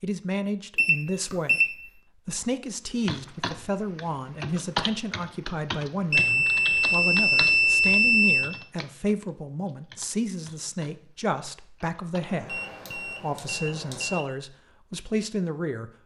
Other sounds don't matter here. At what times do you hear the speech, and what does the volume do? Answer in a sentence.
The speech can be heard from 0.0 to 15.9 s, at a steady volume.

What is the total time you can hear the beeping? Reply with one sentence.
You can hear the beeping for 5 seconds altogether.